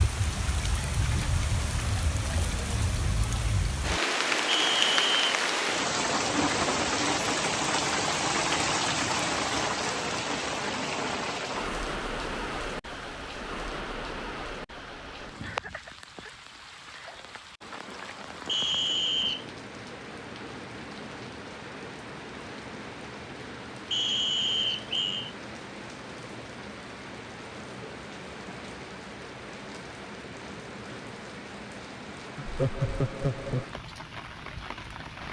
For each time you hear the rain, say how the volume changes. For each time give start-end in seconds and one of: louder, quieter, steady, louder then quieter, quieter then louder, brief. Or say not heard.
0.0-35.2 quieter.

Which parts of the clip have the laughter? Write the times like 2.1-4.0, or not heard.
32.4-33.8.